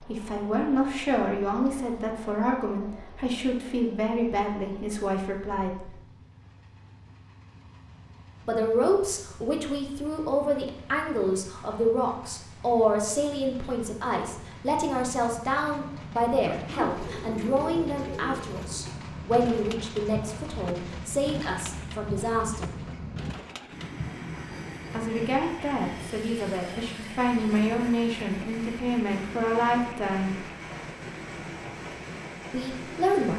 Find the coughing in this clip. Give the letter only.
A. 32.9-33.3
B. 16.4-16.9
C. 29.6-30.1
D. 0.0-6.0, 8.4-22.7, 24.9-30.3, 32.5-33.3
B.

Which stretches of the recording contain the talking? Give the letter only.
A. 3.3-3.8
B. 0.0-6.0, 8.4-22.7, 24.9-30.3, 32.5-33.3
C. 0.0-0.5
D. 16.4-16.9
B.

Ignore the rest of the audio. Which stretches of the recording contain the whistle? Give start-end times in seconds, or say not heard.
not heard.